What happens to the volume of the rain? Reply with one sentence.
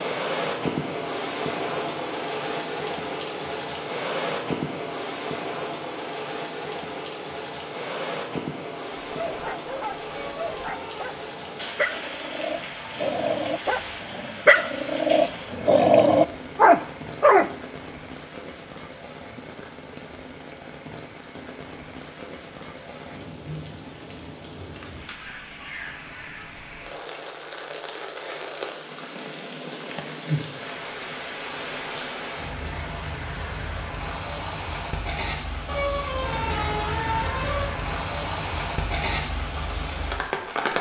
The volume of the rain goes down, then up.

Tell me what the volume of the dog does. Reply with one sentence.
The loudness of the dog goes up.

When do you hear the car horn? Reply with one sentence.
The car horn can be heard from 10.1 to 11.1 s and from 35.6 to 37.7 s.